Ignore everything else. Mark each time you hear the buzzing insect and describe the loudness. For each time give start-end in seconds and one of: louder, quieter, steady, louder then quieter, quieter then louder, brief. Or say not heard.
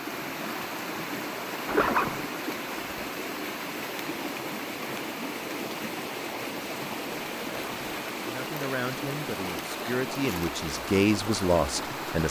not heard.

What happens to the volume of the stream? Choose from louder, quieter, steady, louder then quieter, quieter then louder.
steady.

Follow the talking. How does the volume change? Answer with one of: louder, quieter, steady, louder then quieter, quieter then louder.
quieter then louder.